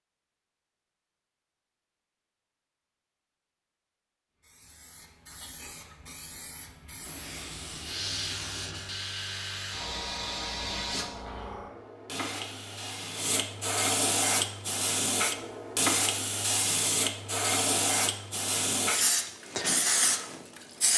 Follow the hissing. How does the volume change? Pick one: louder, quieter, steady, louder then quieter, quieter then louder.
louder.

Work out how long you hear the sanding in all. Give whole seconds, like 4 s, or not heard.
2 s.